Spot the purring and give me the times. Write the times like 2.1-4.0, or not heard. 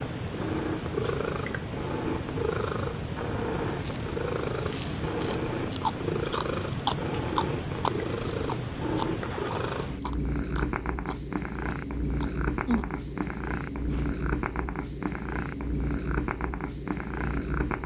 0.0-17.8.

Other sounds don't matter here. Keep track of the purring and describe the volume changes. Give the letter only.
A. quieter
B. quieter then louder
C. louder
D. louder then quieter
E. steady
E.